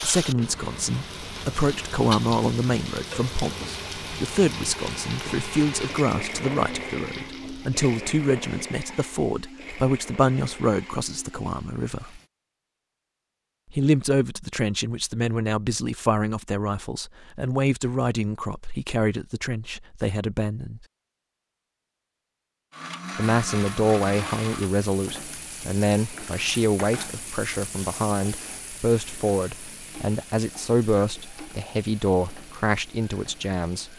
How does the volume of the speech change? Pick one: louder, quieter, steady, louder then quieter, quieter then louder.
steady.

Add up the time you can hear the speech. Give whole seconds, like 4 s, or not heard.
30 s.